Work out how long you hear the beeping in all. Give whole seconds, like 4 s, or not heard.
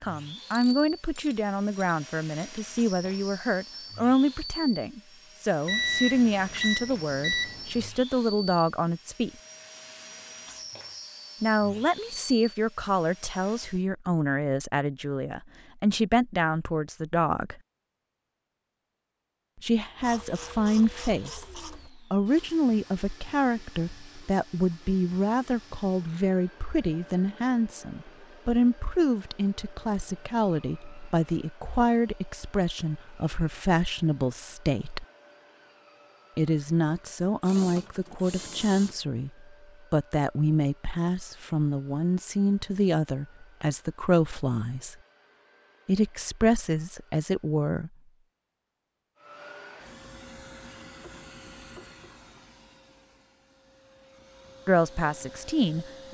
2 s.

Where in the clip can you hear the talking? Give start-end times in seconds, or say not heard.
0.0-9.3, 11.4-17.6, 19.6-35.0, 36.4-45.0, 45.9-47.9, 54.6-56.1.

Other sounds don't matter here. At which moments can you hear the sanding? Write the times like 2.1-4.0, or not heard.
not heard.